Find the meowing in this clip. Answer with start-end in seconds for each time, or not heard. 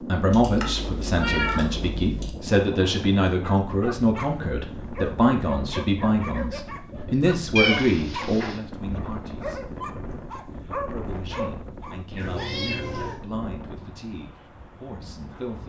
0.3-2.3, 7.5-8.6, 12.2-13.2.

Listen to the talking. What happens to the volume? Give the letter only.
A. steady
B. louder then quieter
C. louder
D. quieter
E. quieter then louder
D.